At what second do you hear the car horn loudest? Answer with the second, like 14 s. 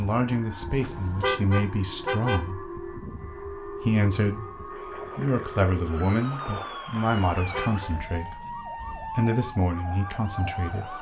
1 s.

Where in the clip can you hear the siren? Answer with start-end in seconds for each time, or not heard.
0.1-10.9.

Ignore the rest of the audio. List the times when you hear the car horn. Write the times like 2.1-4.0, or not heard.
0.7-2.5, 7.0-7.9.